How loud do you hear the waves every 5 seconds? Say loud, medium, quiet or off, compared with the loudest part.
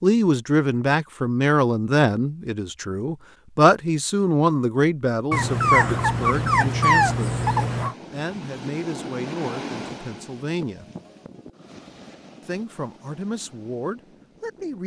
off, loud, medium.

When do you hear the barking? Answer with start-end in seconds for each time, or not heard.
5.3-8.0.